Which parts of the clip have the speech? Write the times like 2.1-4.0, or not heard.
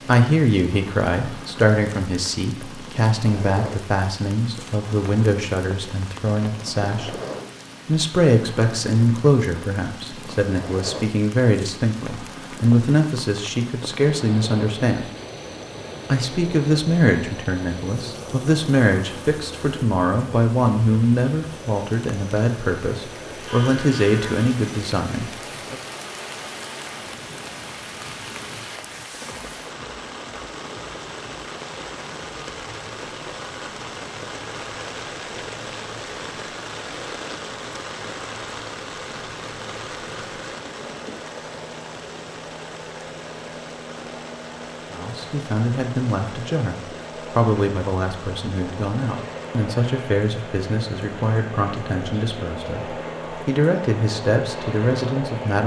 0.0-7.2, 7.8-15.1, 16.1-25.8, 44.9-55.6.